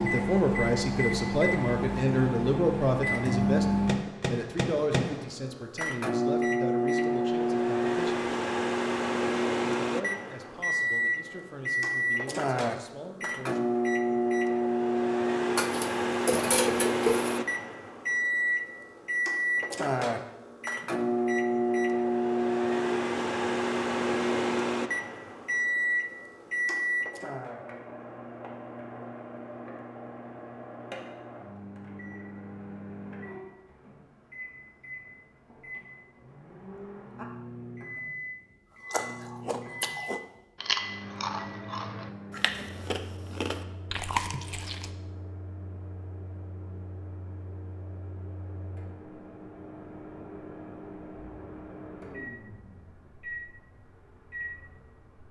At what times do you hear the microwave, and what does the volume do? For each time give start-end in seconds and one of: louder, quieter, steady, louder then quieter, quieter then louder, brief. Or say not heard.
0.0-55.2 quieter.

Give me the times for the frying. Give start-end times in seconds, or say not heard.
not heard.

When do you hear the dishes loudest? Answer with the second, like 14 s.
17 s.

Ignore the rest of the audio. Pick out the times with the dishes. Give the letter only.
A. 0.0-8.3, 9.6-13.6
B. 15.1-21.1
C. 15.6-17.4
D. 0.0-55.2
C.